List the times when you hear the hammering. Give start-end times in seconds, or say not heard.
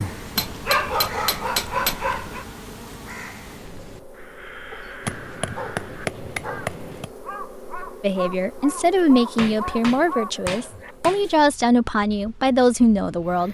0.3-1.9, 5.0-7.1, 9.3-11.2.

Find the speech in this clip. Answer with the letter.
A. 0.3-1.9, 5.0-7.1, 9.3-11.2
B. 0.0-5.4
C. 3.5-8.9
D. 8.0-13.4
D.